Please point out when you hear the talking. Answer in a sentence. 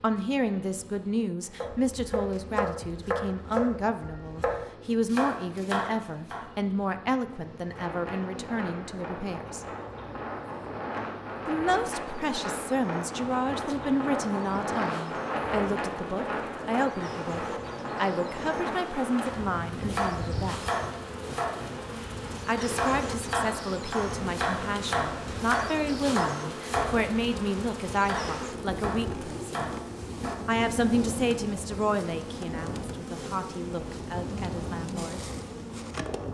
The talking can be heard from 0.0 to 9.7 s, from 11.4 to 20.6 s, from 22.4 to 29.8 s and from 30.4 to 35.2 s.